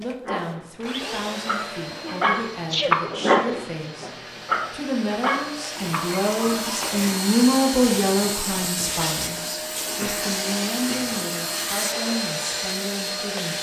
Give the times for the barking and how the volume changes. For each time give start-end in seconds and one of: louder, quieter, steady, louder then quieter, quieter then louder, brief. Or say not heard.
0.2-7.1 louder then quieter.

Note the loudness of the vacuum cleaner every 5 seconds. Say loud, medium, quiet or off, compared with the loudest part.
medium, loud, loud.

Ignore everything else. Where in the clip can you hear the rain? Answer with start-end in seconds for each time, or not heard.
not heard.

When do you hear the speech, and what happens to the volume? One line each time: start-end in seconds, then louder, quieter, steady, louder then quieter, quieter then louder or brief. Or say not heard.
0.0-13.5 louder then quieter.